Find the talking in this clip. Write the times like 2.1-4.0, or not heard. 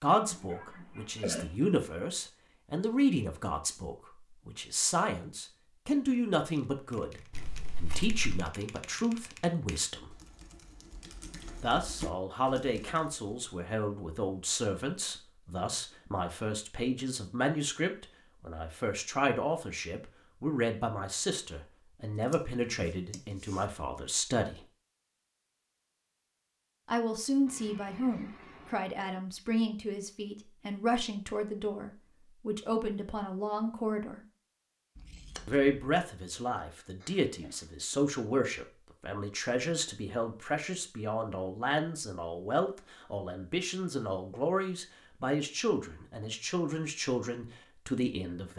0.0-10.2, 11.6-24.6, 26.9-34.2, 35.5-48.5.